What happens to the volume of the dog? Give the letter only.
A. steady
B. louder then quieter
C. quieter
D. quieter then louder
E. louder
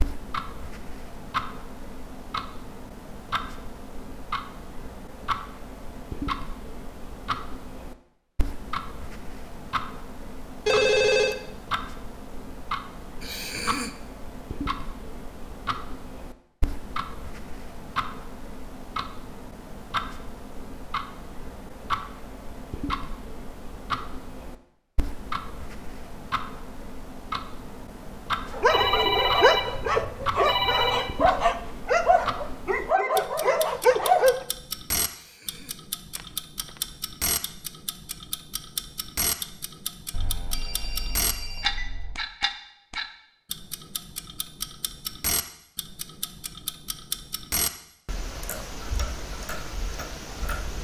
A.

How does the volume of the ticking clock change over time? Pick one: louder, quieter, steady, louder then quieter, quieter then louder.
steady.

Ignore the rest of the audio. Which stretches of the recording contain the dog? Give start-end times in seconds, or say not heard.
28.5-34.4.